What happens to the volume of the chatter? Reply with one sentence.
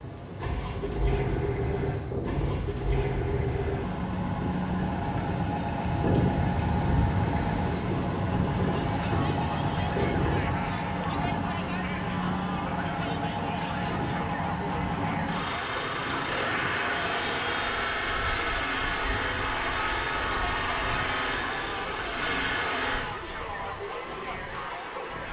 The volume of the chatter stays about the same.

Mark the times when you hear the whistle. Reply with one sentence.
You can't hear the whistle here.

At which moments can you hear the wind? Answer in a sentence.
You can hear the wind from 0.0 to 25.2 s.